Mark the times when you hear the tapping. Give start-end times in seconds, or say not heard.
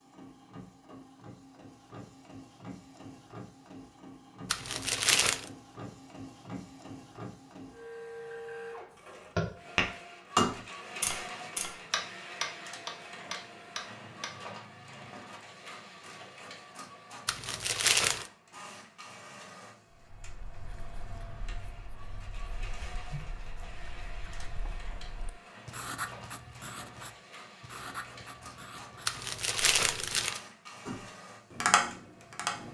9.3-14.3, 30.9-32.6.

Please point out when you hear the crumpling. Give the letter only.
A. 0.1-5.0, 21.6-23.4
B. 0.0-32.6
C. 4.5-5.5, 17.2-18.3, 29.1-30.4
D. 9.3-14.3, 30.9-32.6
C.